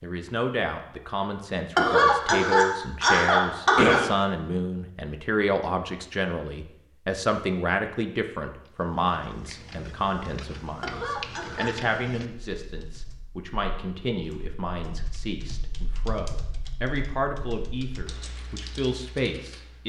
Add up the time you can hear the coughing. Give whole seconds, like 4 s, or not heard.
3 s.